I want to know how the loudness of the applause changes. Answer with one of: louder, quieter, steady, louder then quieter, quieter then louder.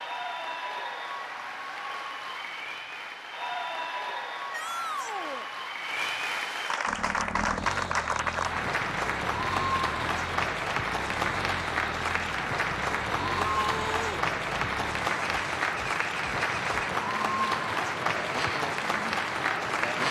louder.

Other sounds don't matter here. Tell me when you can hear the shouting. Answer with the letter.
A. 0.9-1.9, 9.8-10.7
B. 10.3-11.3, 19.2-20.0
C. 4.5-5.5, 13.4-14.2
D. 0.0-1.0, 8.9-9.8
C.